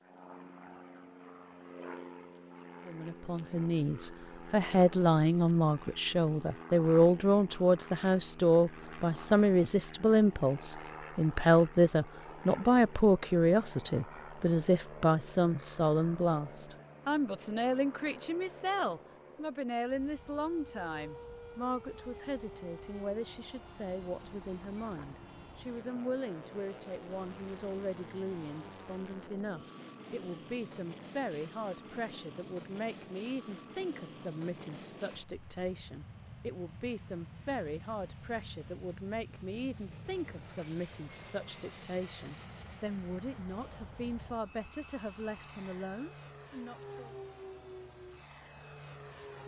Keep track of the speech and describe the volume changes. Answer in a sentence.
The volume of the speech goes down.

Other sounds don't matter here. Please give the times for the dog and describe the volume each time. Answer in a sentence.
You can't hear the dog here.